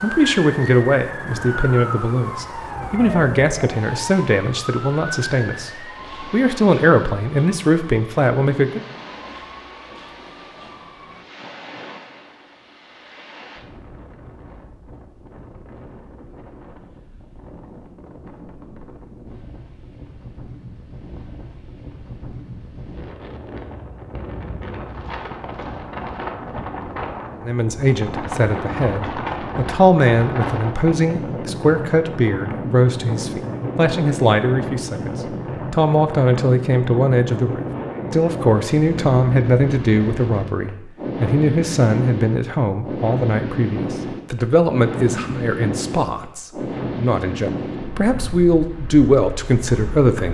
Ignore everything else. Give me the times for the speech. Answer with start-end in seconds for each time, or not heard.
0.0-8.8, 27.4-50.2.